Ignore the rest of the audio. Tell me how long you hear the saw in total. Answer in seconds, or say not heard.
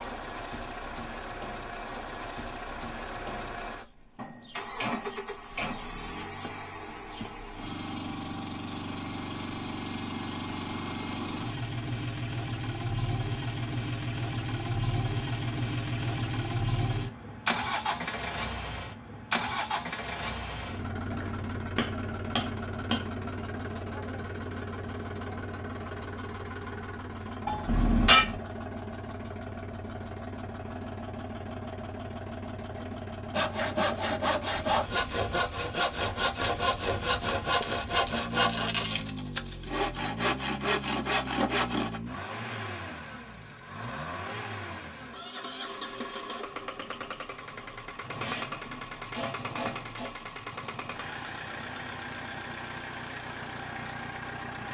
9 s.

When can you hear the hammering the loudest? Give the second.
28 s.